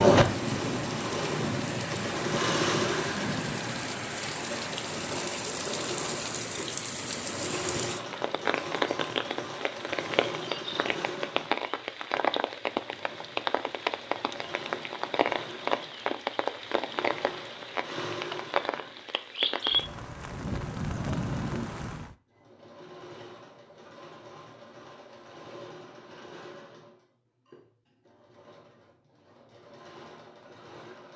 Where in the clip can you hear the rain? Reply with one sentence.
You can hear the rain from 0.0 to 22.1 s.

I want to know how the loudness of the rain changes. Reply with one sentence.
The loudness of the rain stays about the same.